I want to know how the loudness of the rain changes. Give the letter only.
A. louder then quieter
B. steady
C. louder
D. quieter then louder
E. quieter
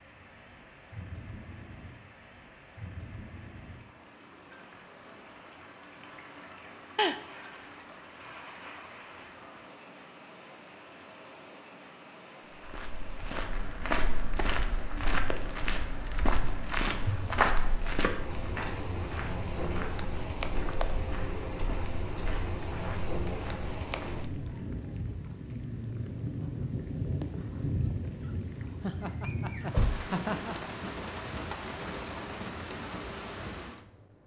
C.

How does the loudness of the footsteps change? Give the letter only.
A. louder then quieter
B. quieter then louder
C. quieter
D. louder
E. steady
C.